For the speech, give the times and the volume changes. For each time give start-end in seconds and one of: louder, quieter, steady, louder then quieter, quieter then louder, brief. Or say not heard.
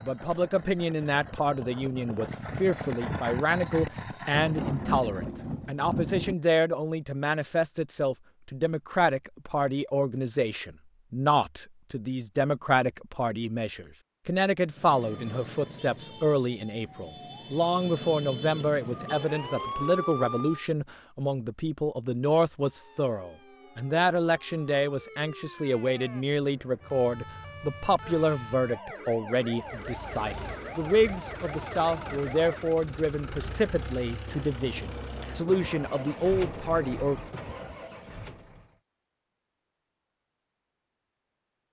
0.0-37.2 steady.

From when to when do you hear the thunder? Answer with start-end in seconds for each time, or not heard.
4.3-6.3, 34.2-38.3.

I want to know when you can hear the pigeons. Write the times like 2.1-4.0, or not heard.
not heard.